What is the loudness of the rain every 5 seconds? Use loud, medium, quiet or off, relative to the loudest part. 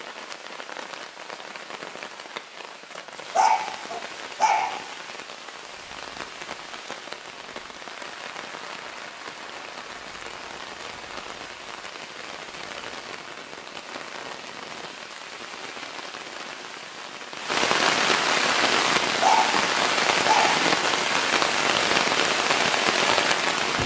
quiet, quiet, quiet, loud, loud.